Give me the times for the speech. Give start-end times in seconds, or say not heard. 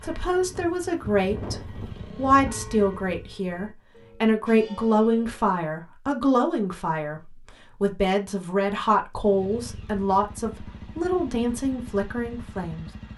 0.0-12.9.